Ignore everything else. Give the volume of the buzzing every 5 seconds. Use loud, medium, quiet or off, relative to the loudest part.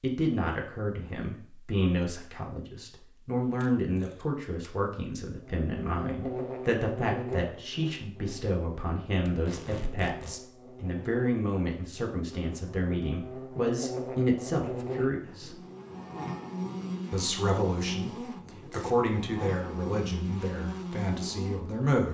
off, loud, loud, loud, loud.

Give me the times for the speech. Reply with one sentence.
The speech can be heard from 0.0 to 15.6 s and from 17.1 to 22.0 s.